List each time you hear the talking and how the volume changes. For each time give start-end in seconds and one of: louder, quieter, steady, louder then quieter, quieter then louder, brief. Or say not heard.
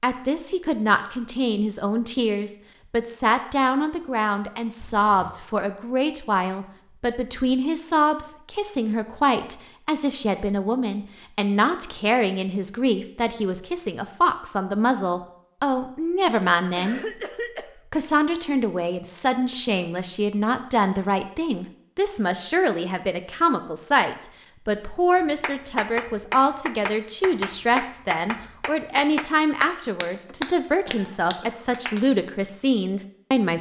0.0-17.0 steady
17.9-33.5 steady.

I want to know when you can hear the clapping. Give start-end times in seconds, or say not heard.
25.1-32.0.